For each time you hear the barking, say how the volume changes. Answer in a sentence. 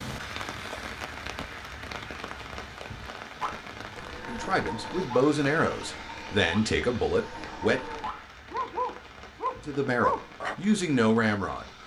The barking can be heard from 3.4 to 10.6 s, getting louder.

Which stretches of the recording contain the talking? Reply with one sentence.
The talking can be heard from 4.2 to 8.0 s and from 9.6 to 11.7 s.